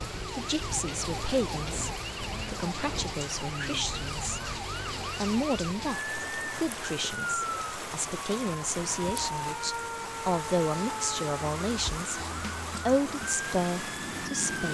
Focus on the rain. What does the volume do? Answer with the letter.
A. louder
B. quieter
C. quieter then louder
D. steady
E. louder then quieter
D.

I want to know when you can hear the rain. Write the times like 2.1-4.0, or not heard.
0.0-14.6.